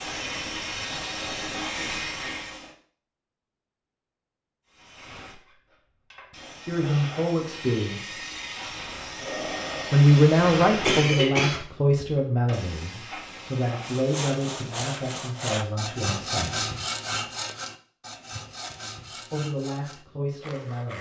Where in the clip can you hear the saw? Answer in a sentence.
The saw can be heard from 13.8 to 20.9 s.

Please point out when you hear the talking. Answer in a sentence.
The talking can be heard from 6.7 to 8.2 s, from 9.9 to 16.6 s and from 19.3 to 20.9 s.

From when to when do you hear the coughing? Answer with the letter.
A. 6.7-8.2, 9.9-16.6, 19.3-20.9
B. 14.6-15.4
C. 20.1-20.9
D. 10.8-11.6
D.